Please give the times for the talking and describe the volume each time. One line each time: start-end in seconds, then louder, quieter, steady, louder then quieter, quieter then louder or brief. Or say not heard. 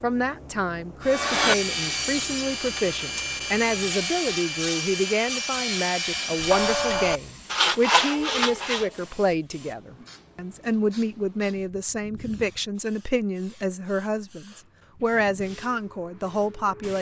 0.0-16.9 steady.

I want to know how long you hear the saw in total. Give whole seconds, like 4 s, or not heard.
8 s.